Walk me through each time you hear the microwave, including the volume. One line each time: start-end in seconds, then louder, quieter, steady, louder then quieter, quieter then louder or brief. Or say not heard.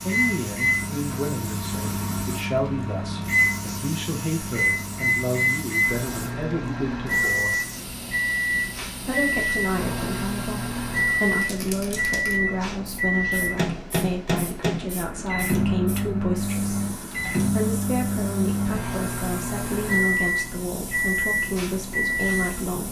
0.0-22.8 steady.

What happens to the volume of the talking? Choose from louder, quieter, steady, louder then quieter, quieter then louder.
steady.